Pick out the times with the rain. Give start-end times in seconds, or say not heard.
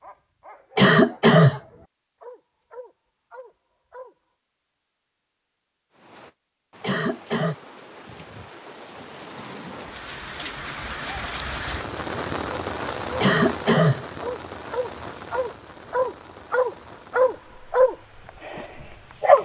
5.9-19.4.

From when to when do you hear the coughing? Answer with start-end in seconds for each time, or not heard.
0.8-1.6, 6.8-7.5, 13.2-14.1.